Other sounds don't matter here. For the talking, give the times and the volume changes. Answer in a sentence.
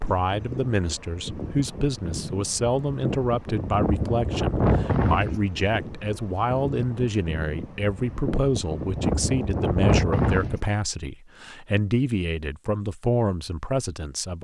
The talking can be heard from 0.0 to 14.3 s, at a steady volume.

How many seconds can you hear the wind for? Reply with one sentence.
You can hear the wind for 11 seconds altogether.